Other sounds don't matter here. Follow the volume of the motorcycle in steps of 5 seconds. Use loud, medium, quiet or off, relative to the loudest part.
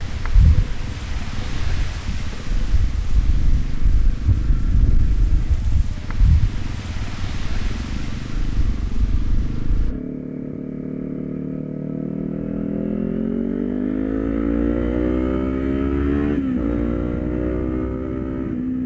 quiet, medium, loud, loud.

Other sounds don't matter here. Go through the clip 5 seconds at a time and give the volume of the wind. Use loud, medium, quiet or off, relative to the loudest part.
loud, loud, off, off.